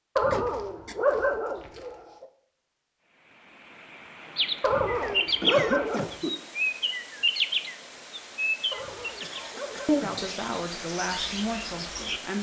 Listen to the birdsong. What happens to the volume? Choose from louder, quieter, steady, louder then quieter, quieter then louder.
quieter.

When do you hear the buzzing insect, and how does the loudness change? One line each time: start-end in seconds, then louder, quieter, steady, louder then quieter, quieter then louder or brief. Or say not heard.
not heard.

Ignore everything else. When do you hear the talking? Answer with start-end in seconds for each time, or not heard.
10.0-12.3.